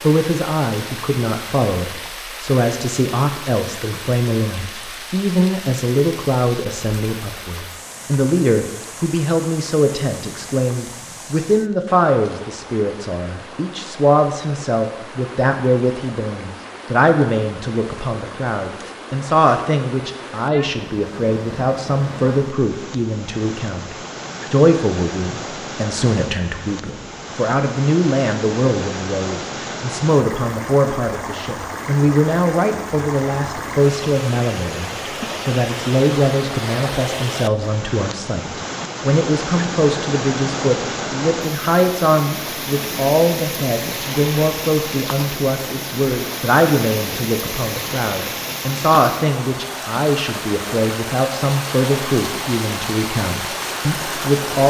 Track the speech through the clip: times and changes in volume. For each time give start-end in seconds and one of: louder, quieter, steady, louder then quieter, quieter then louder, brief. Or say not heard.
0.0-54.6 steady.